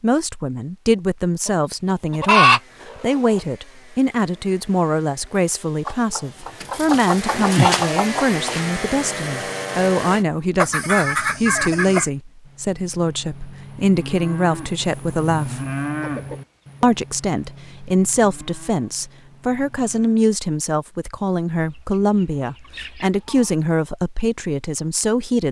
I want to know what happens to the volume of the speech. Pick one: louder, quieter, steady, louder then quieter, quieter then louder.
steady.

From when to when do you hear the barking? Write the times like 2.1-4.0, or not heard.
not heard.